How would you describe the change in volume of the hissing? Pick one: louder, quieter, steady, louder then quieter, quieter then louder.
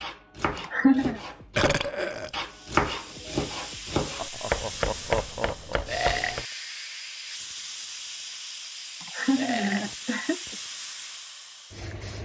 steady.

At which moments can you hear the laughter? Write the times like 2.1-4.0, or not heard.
0.6-1.2, 4.2-5.8, 9.0-10.6.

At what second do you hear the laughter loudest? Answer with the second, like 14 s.
1 s.